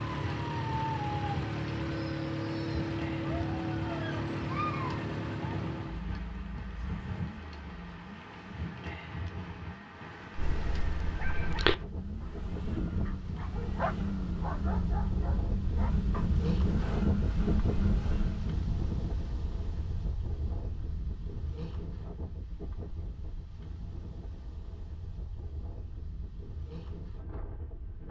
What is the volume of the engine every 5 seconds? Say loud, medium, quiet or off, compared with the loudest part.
loud, medium, medium, loud, off, off.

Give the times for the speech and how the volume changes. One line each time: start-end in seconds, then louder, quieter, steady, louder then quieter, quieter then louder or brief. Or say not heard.
not heard.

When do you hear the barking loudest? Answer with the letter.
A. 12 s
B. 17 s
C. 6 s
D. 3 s
A.